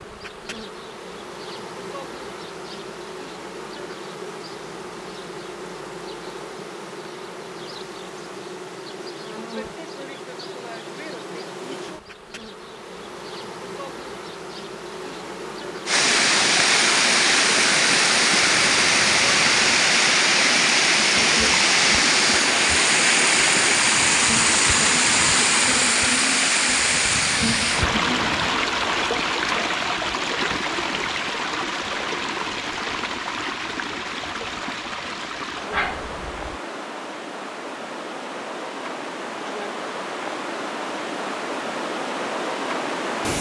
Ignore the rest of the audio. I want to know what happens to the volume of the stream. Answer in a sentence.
The loudness of the stream goes down.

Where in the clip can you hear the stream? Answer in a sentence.
The stream can be heard from 15.8 to 43.3 s.